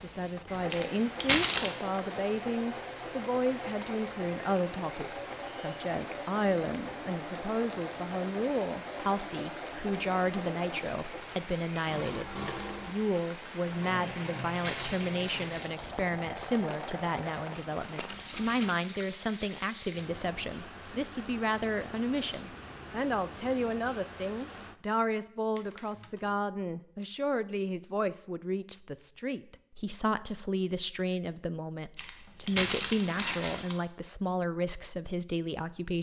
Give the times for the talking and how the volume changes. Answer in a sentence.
The talking can be heard from 0.0 to 35.9 s, at a steady volume.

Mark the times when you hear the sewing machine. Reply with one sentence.
The sewing machine can be heard from 0.2 to 18.8 s.